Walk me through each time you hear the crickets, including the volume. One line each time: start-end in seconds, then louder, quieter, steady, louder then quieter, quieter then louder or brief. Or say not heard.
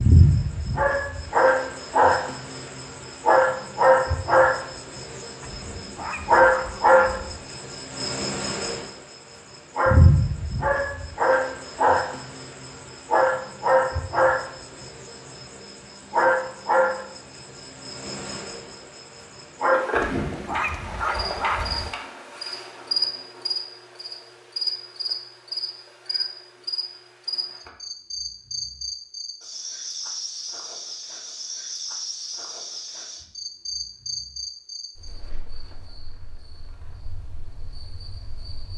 0.0-38.7 quieter.